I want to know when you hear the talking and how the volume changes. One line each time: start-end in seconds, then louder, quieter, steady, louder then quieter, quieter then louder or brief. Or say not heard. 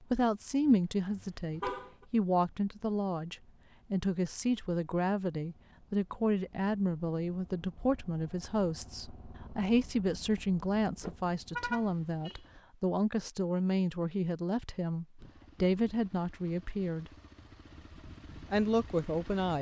0.0-17.1 steady
18.5-19.5 brief.